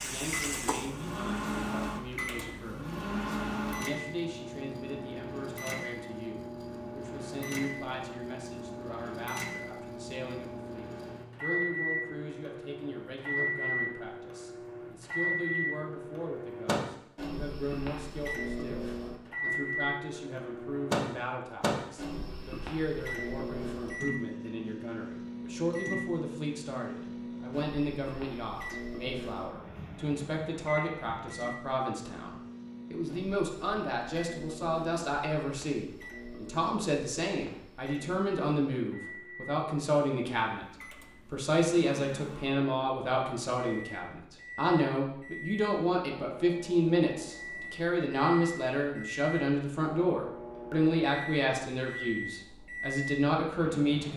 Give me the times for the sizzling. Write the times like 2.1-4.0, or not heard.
0.0-1.8.